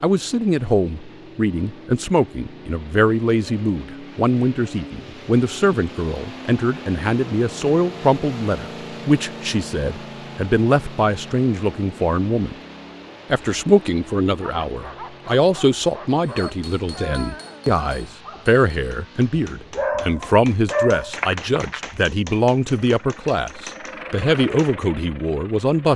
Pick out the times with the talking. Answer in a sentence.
You can hear the talking from 0.0 to 12.6 s and from 13.3 to 25.9 s.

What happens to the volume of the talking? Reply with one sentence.
The loudness of the talking stays about the same.